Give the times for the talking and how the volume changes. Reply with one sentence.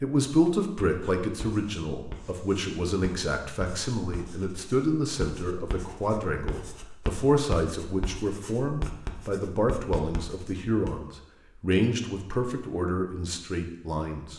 You can hear the talking from 0.0 to 14.3 s, at a steady volume.